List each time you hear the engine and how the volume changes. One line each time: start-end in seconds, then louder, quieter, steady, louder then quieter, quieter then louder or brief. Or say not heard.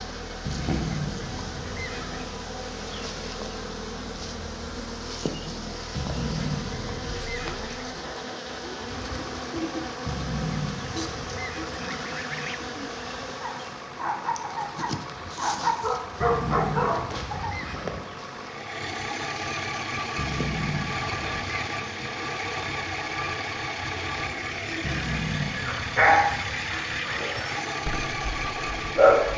0.0-29.3 louder.